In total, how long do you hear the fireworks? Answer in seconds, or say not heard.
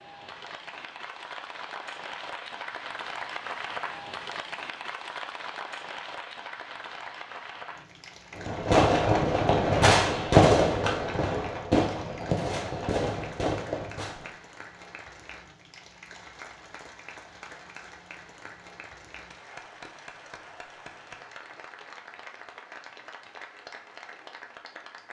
6 s.